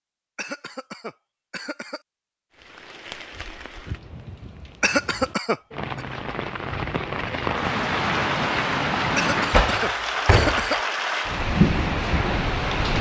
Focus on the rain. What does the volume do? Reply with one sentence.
The loudness of the rain goes up.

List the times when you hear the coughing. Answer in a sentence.
You can hear the coughing from 0.3 to 2.0 s, from 4.8 to 6.0 s and from 9.2 to 10.8 s.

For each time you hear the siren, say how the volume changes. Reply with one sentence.
You can't hear the siren here.